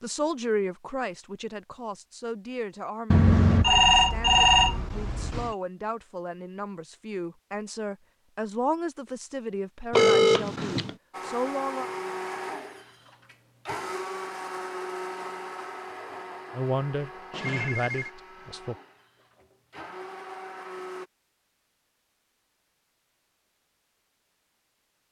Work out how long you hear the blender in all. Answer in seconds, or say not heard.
10 s.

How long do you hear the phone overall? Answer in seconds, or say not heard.
4 s.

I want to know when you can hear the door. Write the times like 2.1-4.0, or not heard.
not heard.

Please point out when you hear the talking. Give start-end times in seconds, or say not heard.
0.0-11.9, 16.5-18.8.